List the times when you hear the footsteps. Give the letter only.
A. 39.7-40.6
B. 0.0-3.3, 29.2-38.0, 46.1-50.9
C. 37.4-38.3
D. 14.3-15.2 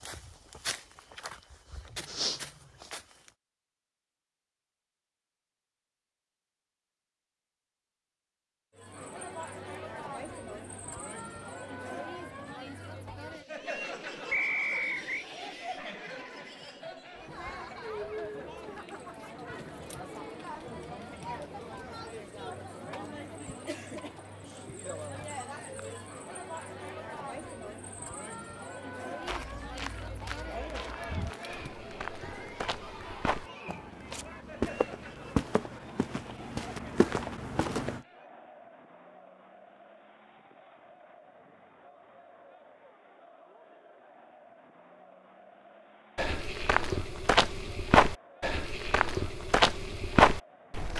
B.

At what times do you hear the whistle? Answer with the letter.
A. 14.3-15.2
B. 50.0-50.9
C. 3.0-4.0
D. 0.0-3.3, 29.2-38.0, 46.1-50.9
A.